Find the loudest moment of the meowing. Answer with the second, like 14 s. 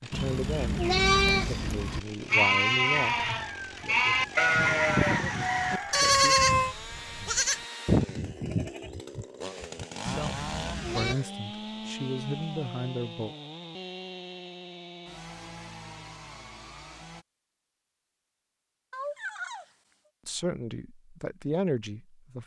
6 s.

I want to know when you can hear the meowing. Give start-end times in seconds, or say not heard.
6.0-6.8, 18.9-19.7.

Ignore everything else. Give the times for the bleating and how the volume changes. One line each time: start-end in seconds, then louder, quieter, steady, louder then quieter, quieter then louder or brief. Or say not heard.
0.1-11.2 quieter.